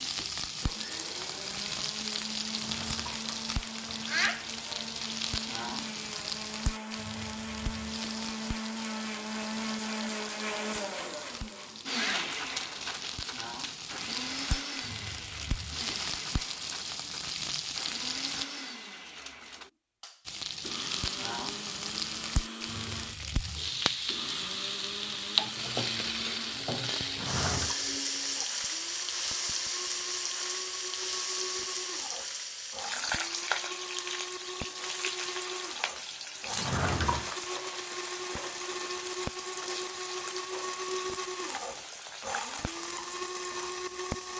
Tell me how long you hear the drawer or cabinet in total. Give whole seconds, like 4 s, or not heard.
3 s.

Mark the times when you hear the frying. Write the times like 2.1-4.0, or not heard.
0.0-18.4, 20.2-44.3.